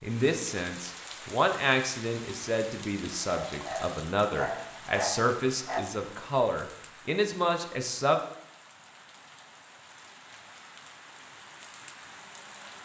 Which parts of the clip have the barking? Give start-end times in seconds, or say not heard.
3.2-5.8.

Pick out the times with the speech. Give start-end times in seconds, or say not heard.
0.0-8.2.